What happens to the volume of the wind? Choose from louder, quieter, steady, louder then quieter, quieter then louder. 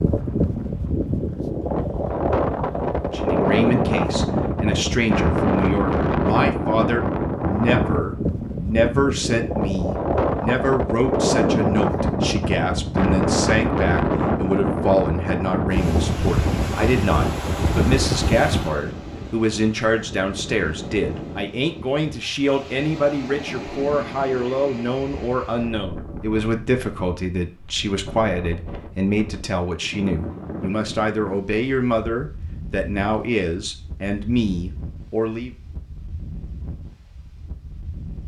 quieter.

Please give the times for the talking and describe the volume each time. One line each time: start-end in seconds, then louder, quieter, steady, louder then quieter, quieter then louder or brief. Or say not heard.
3.0-35.5 steady.